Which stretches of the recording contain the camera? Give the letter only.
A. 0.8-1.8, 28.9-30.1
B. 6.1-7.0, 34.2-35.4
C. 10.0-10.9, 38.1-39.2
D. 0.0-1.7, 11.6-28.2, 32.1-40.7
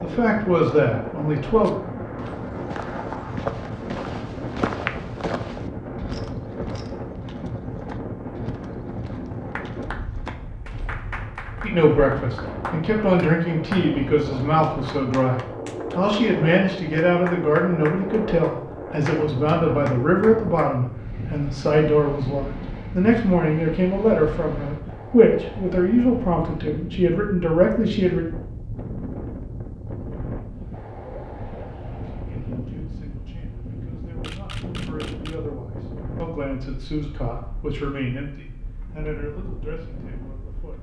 B.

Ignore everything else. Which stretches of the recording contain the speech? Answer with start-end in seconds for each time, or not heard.
0.0-1.7, 11.6-28.2, 32.1-40.7.